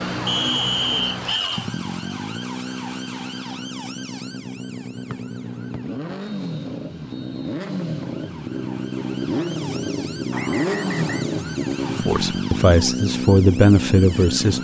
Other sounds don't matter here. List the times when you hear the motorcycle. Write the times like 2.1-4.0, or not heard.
0.0-14.6.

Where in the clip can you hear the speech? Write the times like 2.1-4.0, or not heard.
12.0-14.6.